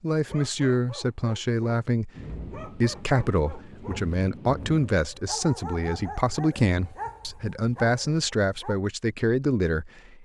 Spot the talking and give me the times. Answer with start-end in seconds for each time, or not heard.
0.0-10.2.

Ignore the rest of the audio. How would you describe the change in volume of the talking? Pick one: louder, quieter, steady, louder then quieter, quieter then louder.
steady.